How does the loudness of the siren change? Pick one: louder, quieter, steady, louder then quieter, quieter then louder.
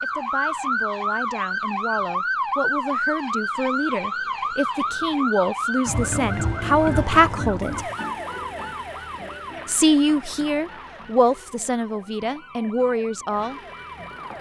quieter.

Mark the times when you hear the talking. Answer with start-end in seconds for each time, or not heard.
0.0-7.8, 9.7-13.6.